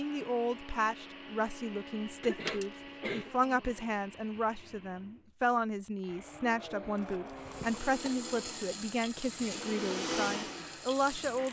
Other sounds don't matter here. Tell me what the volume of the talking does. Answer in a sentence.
The volume of the talking stays about the same.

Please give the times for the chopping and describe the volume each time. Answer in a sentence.
You can't hear the chopping here.